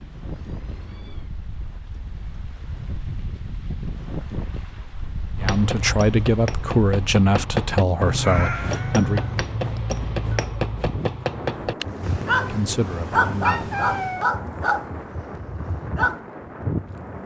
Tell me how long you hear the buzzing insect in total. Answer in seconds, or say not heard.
not heard.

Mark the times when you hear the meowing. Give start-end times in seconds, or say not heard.
0.2-1.4, 8.2-9.3, 12.0-14.2.